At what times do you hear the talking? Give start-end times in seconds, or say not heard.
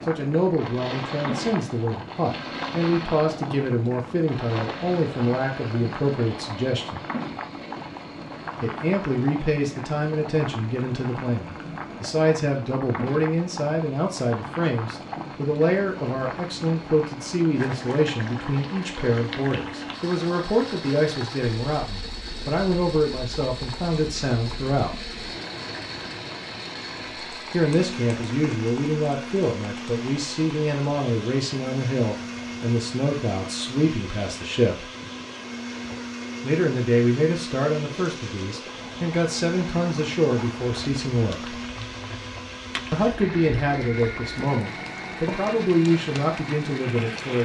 0.1-7.0, 8.6-25.1, 27.5-34.9, 36.4-41.6, 42.9-47.4.